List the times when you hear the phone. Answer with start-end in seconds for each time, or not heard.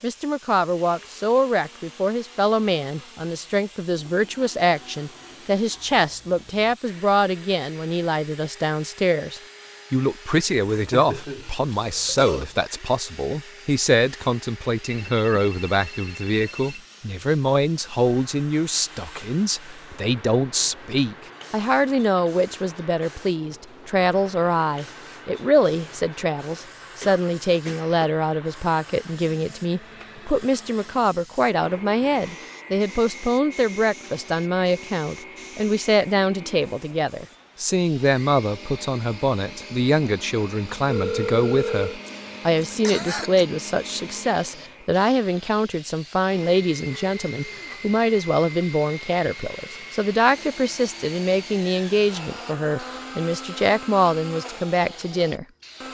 14.8-16.8, 40.9-42.0.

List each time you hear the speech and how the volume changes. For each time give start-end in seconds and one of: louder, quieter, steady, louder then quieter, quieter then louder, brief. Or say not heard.
0.0-55.5 steady.